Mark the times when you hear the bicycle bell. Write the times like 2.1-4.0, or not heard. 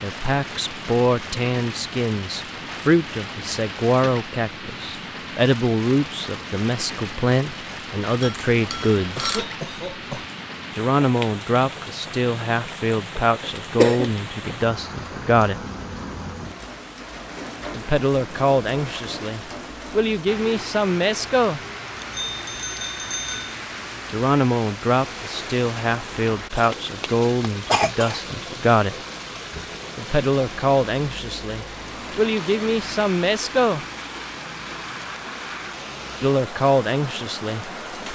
8.2-9.4, 21.9-23.6.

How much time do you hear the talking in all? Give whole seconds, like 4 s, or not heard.
29 s.